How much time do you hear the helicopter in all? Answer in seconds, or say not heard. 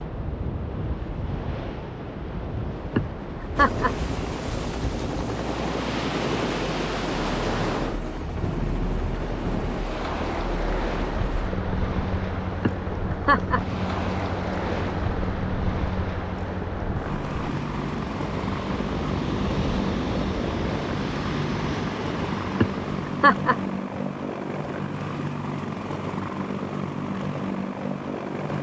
25 s.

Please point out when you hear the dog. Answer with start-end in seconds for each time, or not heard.
not heard.